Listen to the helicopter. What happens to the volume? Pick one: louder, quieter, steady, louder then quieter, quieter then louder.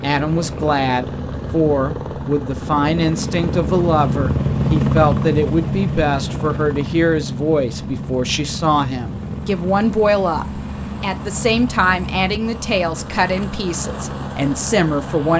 louder then quieter.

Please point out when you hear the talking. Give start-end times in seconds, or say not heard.
0.0-15.3.